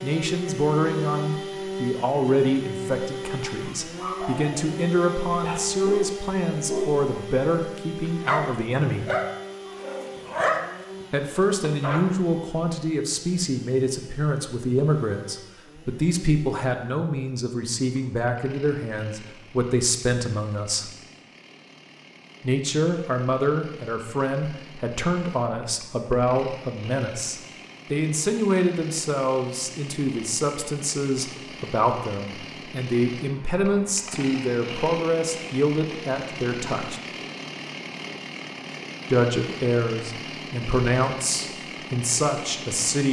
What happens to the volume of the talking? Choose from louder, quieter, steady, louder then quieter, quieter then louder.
steady.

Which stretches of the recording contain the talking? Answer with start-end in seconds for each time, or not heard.
0.0-9.1, 11.1-20.9, 22.4-37.0, 39.0-43.0.